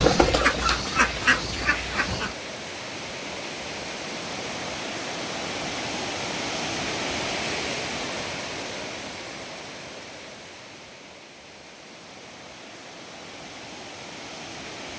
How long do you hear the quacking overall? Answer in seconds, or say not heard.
2 s.